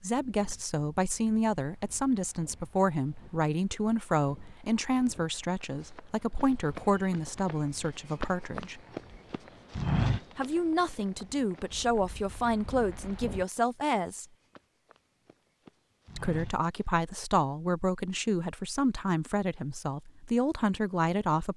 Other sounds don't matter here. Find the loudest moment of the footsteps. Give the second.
10 s.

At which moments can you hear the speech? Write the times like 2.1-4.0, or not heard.
0.0-8.8, 10.3-14.2, 16.1-21.5.